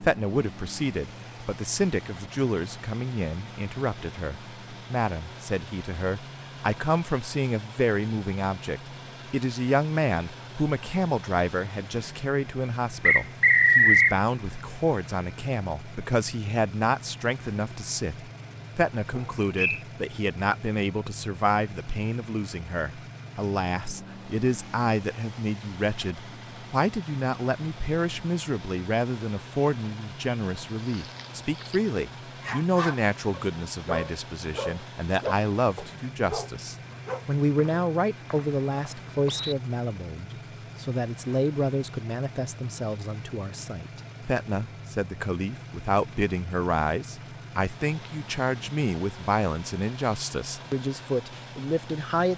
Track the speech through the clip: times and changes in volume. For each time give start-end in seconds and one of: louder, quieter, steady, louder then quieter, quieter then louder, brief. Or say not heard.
0.0-52.3 steady.